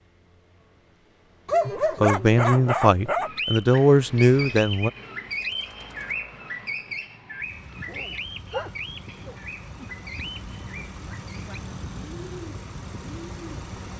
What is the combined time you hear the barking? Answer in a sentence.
The barking can be heard for 4 seconds in total.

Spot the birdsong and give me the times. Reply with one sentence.
You can hear the birdsong from 3.2 to 13.7 s.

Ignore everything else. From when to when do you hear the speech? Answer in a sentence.
The speech can be heard from 1.6 to 4.9 s.